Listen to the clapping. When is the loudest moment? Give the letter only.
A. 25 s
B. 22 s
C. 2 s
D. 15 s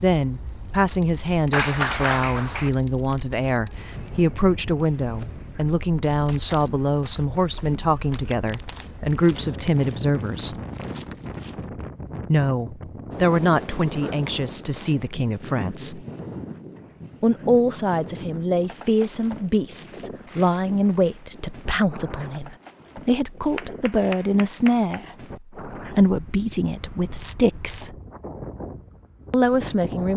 C.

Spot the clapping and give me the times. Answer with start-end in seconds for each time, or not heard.
1.5-2.7, 23.6-25.0.